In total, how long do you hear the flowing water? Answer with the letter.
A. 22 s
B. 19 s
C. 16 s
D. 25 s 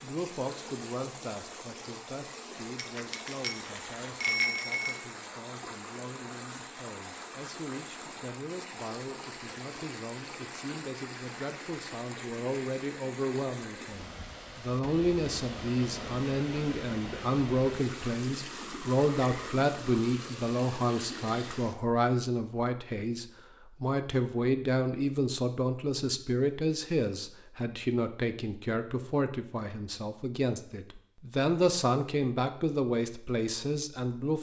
A.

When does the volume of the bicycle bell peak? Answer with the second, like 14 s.
4 s.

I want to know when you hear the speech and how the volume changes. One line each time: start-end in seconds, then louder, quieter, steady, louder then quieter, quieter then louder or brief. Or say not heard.
0.0-34.3 louder.